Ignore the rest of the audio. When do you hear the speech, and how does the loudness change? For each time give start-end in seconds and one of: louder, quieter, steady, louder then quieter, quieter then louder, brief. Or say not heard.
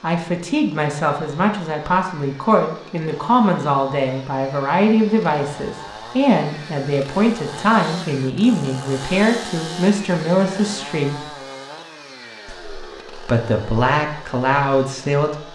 0.0-11.3 steady
12.4-15.4 brief.